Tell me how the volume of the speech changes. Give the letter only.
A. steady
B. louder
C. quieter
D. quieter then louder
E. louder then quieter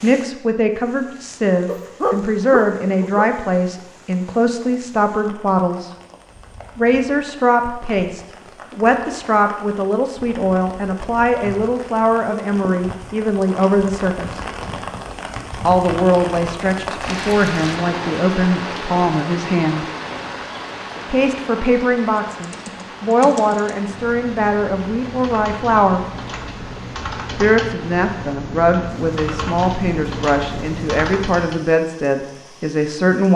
A.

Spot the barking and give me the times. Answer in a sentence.
The barking can be heard from 1.6 to 3.2 s.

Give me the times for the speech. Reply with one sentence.
The speech can be heard from 0.0 to 5.9 s, from 6.8 to 14.4 s, from 15.7 to 19.9 s, from 21.1 to 26.1 s and from 27.4 to 33.3 s.